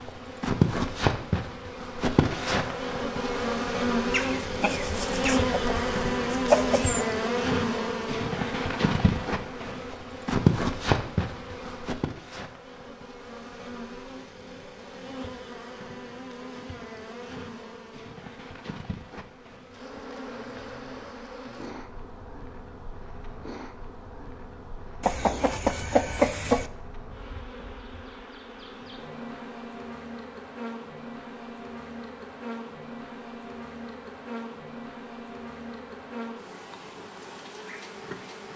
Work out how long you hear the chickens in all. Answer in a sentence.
The chickens can be heard for 5 seconds in total.